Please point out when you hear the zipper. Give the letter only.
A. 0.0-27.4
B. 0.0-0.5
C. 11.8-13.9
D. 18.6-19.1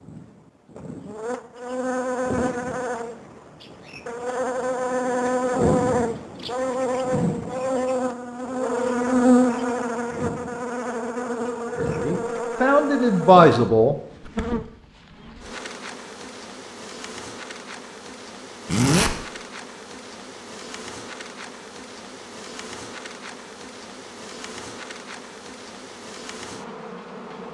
D.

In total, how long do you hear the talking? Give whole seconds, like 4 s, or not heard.
2 s.